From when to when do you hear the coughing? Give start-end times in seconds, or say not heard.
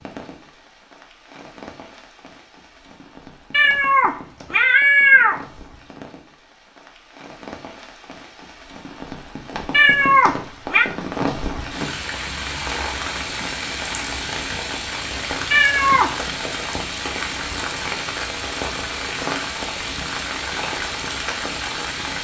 not heard.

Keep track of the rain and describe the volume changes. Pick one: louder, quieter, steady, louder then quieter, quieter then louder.
louder.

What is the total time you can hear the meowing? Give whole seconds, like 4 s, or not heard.
4 s.